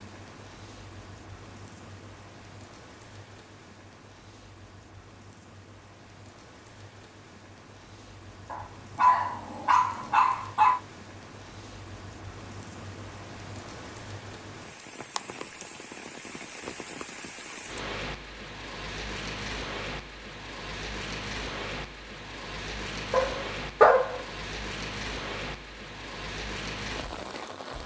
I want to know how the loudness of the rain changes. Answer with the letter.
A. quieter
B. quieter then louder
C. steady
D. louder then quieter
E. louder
E.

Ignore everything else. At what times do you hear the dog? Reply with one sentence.
The dog can be heard from 8.5 to 10.8 s and from 23.1 to 24.2 s.